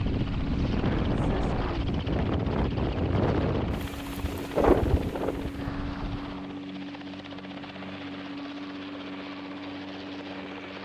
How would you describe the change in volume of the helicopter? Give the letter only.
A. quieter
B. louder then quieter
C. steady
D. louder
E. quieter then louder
C.